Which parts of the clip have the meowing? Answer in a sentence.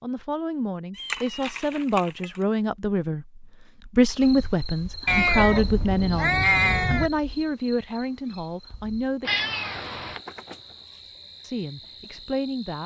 The meowing can be heard from 0.9 to 2.4 s, from 5.0 to 7.1 s and from 9.2 to 10.2 s.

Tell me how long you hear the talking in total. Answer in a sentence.
You can hear the talking for 11 seconds altogether.